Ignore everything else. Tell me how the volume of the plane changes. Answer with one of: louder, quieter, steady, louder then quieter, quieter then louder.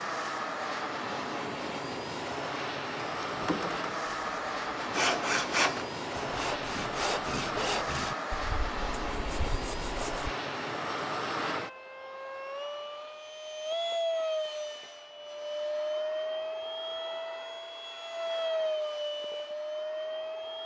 steady.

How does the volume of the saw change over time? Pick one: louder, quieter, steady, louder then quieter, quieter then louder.
louder then quieter.